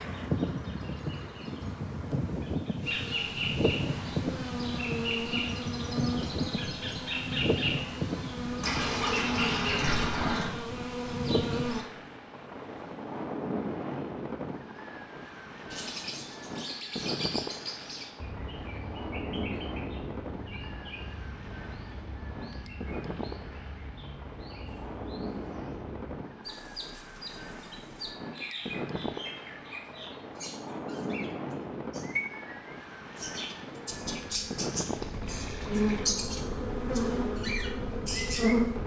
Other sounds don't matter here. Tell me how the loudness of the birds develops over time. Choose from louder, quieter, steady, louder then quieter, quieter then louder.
quieter then louder.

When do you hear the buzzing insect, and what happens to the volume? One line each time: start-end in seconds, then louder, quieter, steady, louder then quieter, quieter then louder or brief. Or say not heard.
0.1-11.8 louder
33.6-38.8 louder then quieter.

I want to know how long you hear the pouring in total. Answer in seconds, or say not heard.
4 s.